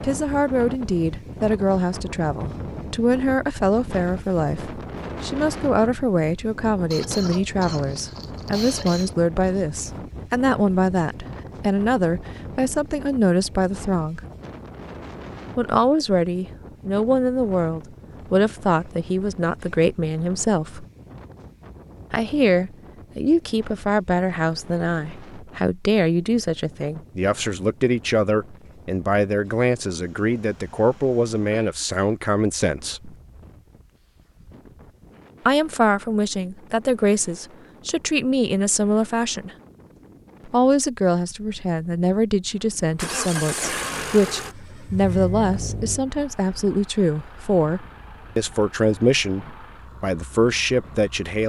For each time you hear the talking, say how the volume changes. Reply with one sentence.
You can hear the talking from 0.0 to 14.2 s, at a steady volume; from 15.6 to 20.9 s, at a steady volume; from 22.1 to 33.1 s, at a steady volume; from 35.5 to 39.5 s, getting quieter then louder; and from 40.5 to 51.4 s, at a steady volume.